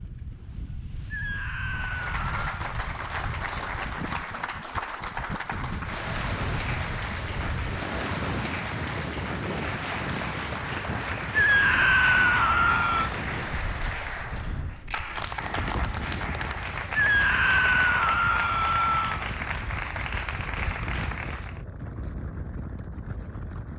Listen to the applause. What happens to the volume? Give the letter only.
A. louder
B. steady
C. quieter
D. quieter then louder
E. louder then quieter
B.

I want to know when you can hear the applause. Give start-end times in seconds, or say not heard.
1.7-21.6.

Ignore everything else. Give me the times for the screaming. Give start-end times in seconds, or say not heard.
1.1-2.5, 11.3-13.1, 16.9-19.2.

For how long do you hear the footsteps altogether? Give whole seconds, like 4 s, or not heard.
not heard.